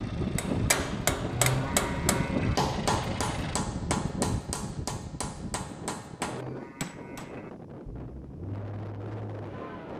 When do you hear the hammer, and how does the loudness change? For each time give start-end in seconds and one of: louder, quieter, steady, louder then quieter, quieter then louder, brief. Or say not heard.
0.3-7.3 quieter.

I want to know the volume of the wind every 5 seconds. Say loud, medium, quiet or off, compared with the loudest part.
loud, medium.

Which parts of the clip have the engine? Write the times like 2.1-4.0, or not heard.
0.0-3.6, 7.8-9.9.